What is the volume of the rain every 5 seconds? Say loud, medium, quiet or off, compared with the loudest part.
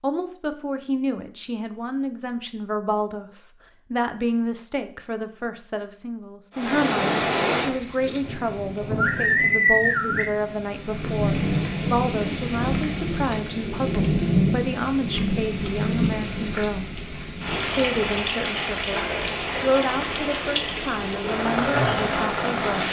off, loud, loud, loud, loud.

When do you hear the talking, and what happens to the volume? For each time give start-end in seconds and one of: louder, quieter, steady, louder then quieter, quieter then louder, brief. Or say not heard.
0.0-17.0 steady
17.8-22.8 louder then quieter.